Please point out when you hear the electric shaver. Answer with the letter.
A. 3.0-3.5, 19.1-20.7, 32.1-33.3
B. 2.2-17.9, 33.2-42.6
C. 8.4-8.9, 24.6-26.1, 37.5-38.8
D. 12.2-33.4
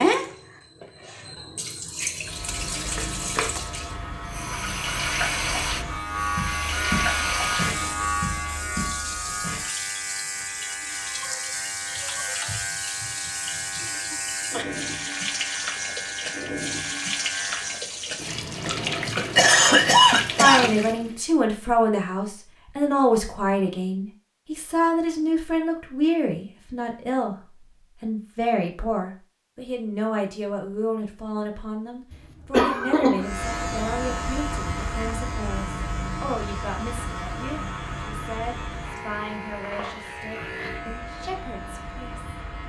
B.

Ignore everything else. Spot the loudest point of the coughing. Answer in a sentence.
The loudest moment of the coughing is at 20 seconds.